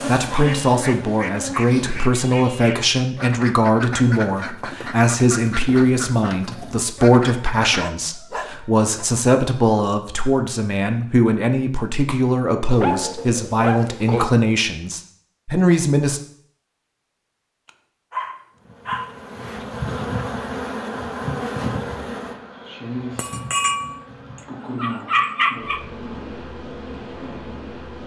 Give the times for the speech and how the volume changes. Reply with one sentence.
You can hear the speech from 0.1 to 16.2 s, at a steady volume.